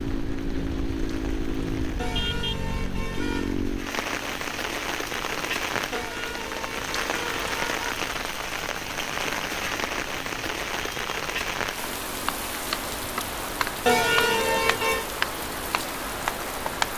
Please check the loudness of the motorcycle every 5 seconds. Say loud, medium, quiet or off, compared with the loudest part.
loud, quiet, quiet, quiet.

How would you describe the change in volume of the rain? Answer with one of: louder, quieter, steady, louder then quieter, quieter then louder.
louder.